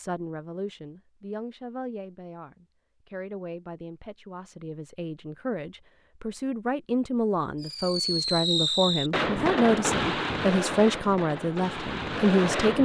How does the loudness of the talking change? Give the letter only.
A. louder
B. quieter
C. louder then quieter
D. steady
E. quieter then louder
A.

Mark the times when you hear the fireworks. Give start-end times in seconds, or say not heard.
7.6-12.8.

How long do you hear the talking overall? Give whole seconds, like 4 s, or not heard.
13 s.